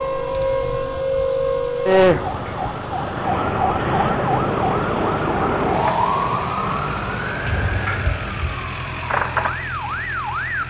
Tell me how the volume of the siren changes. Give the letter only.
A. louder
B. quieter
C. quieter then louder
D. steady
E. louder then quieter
B.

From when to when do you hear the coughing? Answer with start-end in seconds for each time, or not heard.
2.0-2.7, 7.4-8.6.